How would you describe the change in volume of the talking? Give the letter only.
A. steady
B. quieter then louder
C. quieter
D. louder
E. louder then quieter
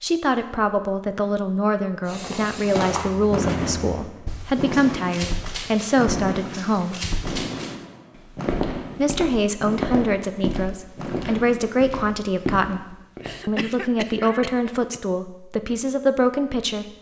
A.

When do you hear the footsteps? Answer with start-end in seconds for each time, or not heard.
2.8-13.3.